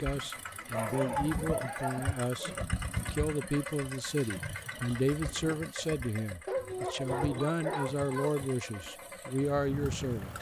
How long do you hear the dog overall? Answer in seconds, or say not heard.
4 s.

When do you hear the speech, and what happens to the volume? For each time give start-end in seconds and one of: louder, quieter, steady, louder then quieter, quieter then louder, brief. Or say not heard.
0.0-10.3 steady.